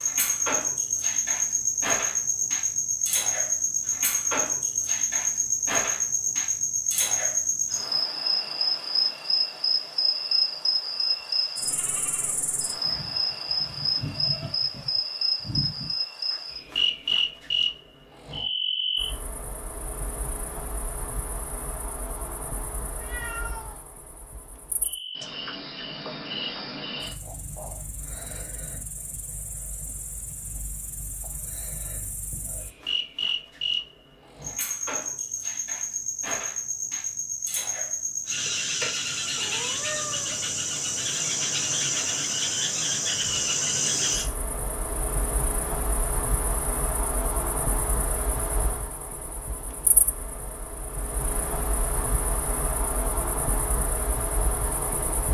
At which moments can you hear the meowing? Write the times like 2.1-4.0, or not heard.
22.9-23.8, 39.4-40.5.